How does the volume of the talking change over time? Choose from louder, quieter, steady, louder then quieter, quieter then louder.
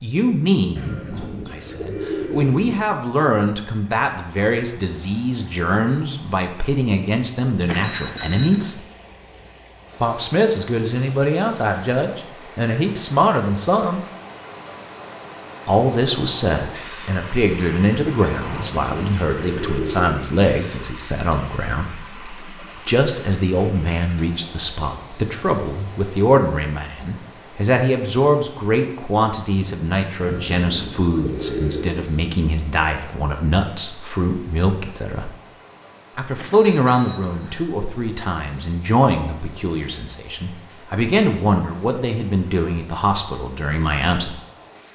steady.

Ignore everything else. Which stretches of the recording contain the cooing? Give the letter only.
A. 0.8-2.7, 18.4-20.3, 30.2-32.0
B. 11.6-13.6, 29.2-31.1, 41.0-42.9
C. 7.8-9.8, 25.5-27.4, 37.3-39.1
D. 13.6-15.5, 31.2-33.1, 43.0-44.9
A.